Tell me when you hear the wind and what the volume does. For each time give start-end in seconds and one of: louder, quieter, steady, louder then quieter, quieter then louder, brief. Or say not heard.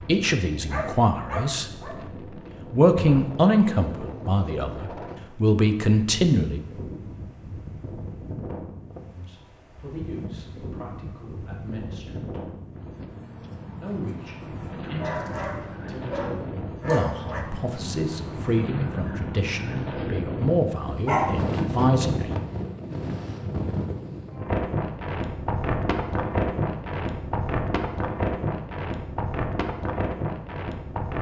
0.0-31.1 louder.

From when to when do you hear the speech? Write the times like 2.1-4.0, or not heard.
0.0-1.6, 2.7-6.7, 9.2-12.4, 13.8-22.4.